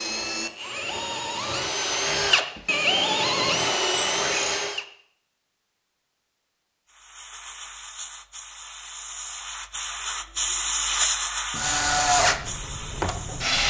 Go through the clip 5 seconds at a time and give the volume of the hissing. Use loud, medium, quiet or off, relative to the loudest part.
off, medium, loud.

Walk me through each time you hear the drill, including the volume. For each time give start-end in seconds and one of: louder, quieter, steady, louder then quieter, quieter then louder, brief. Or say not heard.
0.0-4.8 louder
10.8-13.6 brief.